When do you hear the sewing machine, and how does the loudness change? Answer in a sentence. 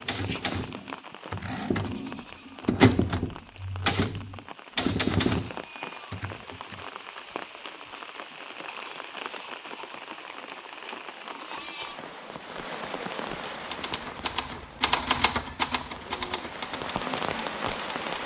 You can't hear the sewing machine here.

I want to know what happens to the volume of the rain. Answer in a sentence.
The loudness of the rain goes up.